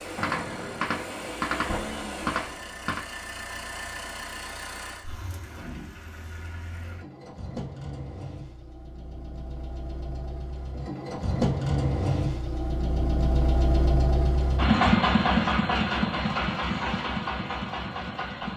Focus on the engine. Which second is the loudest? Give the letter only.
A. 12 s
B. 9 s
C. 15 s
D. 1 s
C.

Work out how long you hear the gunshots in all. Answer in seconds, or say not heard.
3 s.